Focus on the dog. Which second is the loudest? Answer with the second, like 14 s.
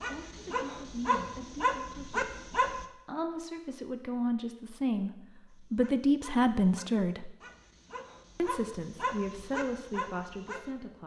2 s.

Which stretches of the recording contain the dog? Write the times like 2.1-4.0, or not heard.
0.0-2.9, 5.5-10.7.